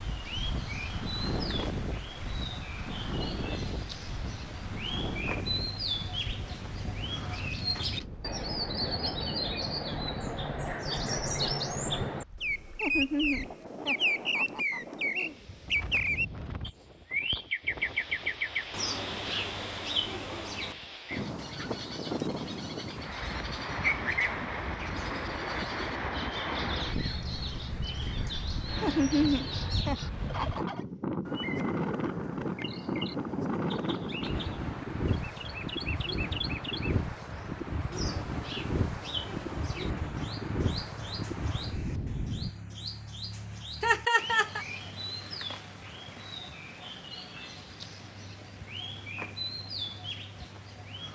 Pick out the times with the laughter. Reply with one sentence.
The laughter can be heard from 12.8 to 15.3 s, from 28.8 to 30.8 s and from 43.8 to 44.6 s.